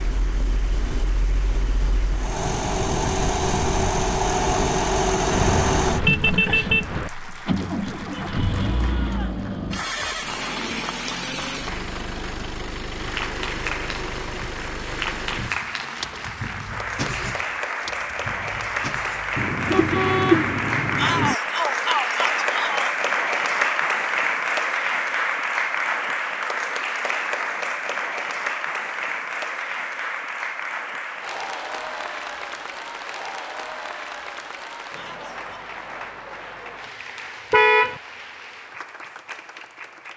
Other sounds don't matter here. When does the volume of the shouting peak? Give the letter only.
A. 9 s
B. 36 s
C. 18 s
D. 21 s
D.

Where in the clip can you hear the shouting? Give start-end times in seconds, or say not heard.
8.1-9.4, 20.9-22.9, 35.0-35.6.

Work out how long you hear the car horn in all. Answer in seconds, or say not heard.
4 s.